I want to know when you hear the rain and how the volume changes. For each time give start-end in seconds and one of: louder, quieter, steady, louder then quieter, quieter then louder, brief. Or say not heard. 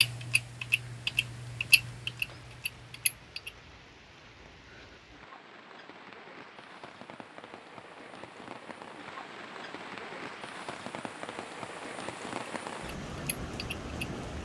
0.0-14.3 louder.